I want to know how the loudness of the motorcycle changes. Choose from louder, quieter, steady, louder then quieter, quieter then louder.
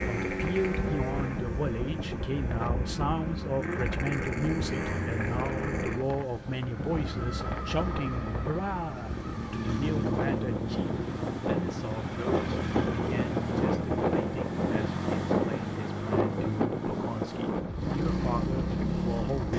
steady.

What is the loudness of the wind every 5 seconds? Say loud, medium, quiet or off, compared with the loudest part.
quiet, medium, loud, loud.